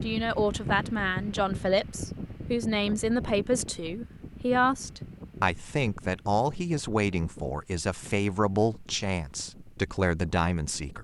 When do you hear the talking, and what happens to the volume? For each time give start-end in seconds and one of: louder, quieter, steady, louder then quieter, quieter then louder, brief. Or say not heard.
0.0-10.9 steady.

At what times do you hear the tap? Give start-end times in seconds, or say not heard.
not heard.